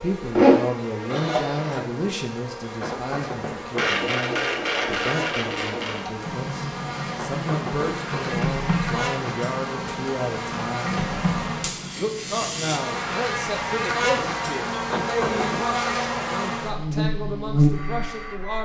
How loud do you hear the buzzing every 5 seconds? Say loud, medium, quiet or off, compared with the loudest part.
quiet, medium, loud, loud.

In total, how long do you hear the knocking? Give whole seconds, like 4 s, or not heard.
4 s.